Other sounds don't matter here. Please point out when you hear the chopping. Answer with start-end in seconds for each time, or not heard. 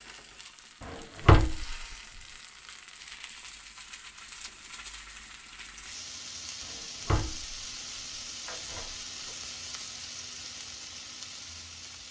not heard.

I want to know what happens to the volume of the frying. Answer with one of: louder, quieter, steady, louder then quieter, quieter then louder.
louder.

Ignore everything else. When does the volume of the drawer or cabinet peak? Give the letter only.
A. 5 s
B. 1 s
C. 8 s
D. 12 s
B.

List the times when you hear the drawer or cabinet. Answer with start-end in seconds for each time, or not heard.
0.8-1.9, 6.7-7.5, 8.4-8.9.